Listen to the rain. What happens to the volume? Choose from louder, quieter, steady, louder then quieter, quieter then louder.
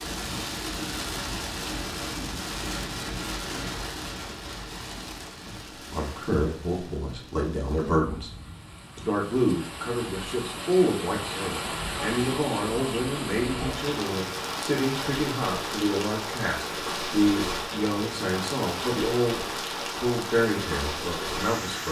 quieter then louder.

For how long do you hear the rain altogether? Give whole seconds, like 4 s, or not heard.
22 s.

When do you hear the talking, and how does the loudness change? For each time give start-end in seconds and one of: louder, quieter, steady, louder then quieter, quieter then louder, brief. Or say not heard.
5.5-8.3 brief
8.9-21.8 steady.